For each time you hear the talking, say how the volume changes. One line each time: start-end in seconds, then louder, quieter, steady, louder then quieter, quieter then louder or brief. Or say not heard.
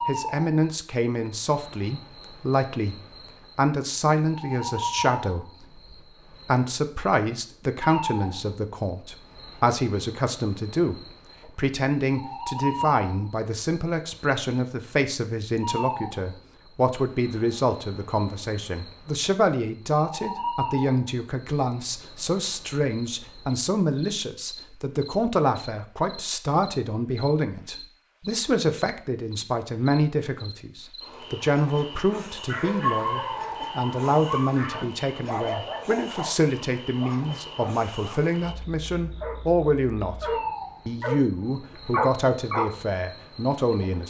0.1-44.0 steady.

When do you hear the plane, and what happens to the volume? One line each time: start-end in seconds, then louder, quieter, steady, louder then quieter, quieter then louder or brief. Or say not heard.
not heard.